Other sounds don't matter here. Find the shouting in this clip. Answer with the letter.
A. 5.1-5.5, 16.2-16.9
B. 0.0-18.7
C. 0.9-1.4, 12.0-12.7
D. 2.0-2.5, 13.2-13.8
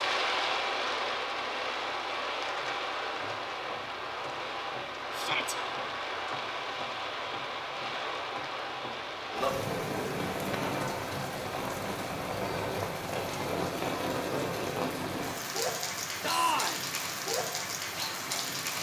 A.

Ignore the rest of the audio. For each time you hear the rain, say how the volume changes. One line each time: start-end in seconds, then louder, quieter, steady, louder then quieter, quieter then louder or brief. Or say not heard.
0.0-18.7 steady.